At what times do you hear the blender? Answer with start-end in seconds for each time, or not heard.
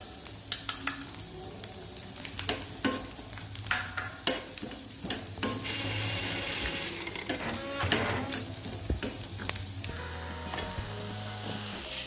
5.6-8.3.